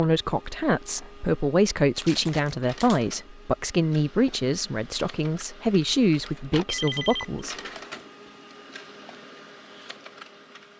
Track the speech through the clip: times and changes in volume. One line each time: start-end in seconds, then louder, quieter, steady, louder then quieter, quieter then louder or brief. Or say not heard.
0.0-7.5 steady.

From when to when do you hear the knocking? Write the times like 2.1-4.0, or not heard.
not heard.